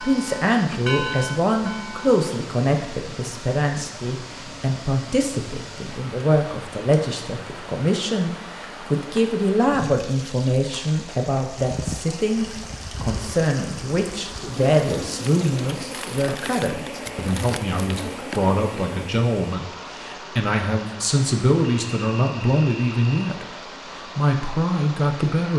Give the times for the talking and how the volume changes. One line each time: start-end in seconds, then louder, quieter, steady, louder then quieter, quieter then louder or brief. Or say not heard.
0.0-25.5 steady.